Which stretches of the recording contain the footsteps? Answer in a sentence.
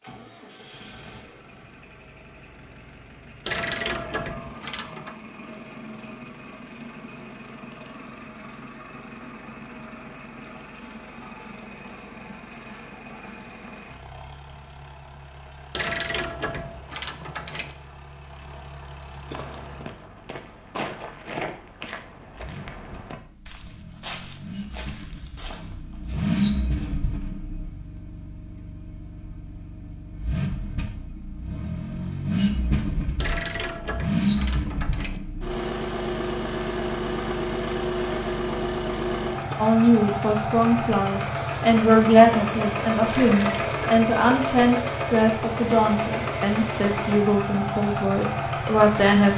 You can hear the footsteps from 19.2 to 27.1 s.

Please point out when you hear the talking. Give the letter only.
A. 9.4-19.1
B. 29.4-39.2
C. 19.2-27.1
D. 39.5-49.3
D.